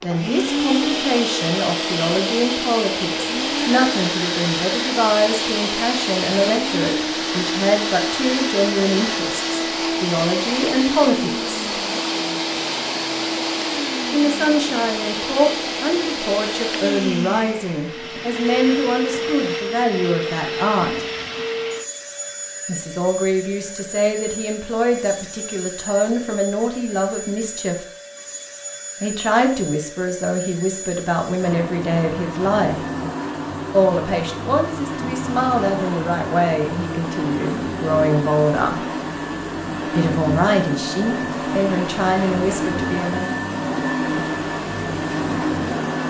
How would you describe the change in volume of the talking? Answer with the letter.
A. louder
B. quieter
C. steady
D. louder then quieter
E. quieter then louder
C.